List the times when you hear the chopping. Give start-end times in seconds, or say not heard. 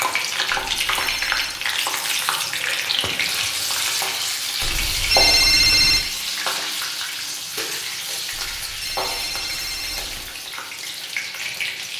not heard.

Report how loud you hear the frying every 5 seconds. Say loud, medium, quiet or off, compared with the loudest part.
loud, loud, medium.